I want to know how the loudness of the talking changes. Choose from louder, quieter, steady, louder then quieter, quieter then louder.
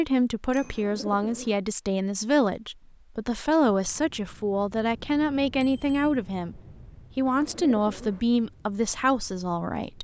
steady.